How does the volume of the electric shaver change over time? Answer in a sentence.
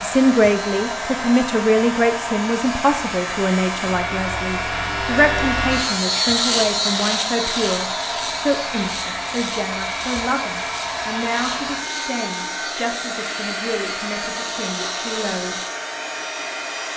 The volume of the electric shaver goes up, then down.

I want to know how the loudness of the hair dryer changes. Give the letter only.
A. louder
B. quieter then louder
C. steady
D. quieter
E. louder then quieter
C.